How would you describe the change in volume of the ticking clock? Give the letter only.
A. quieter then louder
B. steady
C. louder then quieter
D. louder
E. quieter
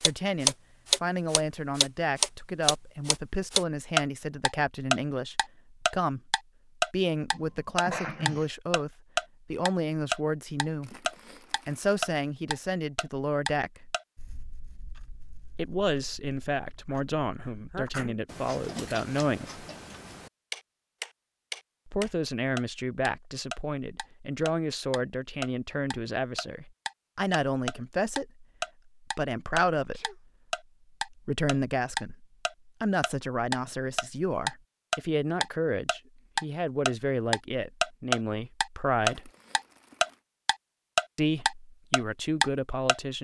A.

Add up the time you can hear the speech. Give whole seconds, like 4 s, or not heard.
36 s.